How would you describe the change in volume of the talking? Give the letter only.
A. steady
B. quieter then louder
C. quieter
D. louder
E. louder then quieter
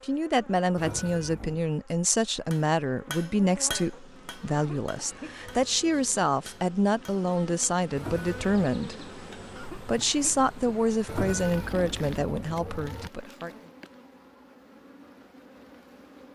A.